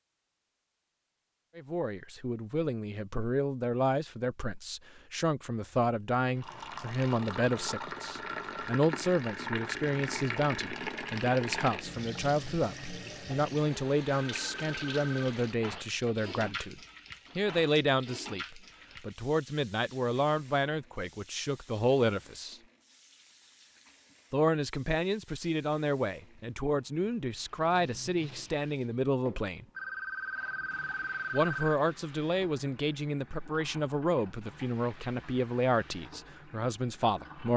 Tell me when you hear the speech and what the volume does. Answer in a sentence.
You can hear the speech from 1.6 to 22.6 s, at a steady volume; from 24.3 to 29.6 s, at a steady volume; and from 31.3 to 37.5 s, at a steady volume.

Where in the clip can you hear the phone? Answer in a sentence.
You can hear the phone from 14.3 to 15.1 s and from 29.8 to 31.8 s.